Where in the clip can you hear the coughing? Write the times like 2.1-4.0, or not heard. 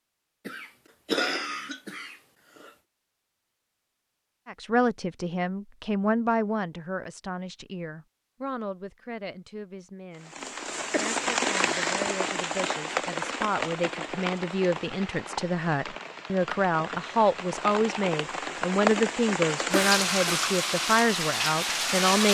0.5-2.7, 10.9-12.1, 19.7-20.5.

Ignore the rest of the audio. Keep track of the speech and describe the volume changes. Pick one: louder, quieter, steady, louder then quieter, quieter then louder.
quieter then louder.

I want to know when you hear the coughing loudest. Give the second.
1 s.